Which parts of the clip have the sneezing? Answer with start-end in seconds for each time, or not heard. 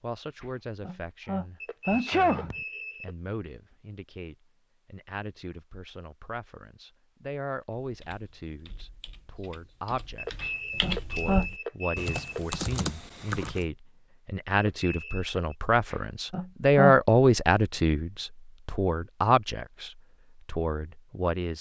0.8-2.6, 10.4-11.5, 15.9-17.0.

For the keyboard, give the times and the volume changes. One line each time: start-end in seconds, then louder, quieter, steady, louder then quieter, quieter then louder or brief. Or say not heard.
7.8-13.7 louder.